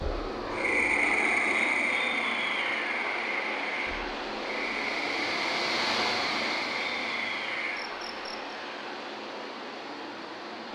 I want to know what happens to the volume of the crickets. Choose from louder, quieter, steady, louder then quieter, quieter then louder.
quieter.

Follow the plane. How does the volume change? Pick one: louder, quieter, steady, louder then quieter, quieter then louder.
quieter.